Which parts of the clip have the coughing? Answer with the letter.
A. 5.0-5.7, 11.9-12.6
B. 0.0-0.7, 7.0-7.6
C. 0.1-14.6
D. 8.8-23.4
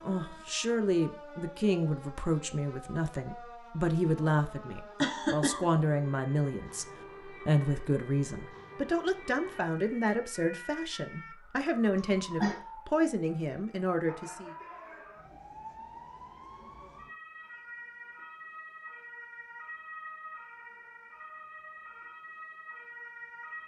A.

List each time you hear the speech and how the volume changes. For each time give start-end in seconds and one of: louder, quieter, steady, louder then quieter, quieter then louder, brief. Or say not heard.
0.1-14.6 steady.